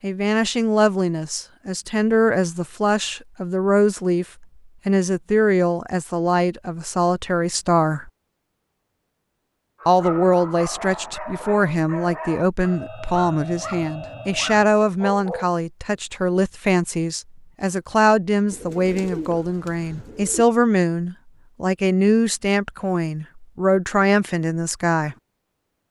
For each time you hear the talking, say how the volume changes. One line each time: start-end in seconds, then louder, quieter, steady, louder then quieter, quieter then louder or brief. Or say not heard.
0.0-8.1 steady
9.8-25.1 steady.